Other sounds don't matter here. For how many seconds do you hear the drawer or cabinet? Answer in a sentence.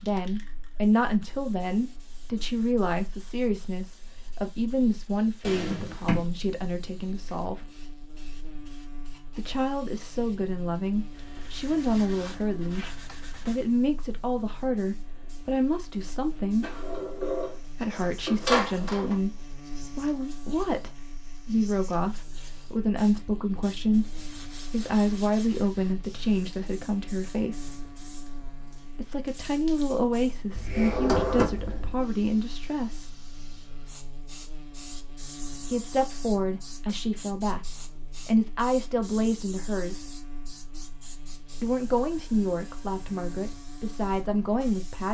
The drawer or cabinet can be heard for 5 seconds in total.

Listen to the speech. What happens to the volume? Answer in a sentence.
The loudness of the speech stays about the same.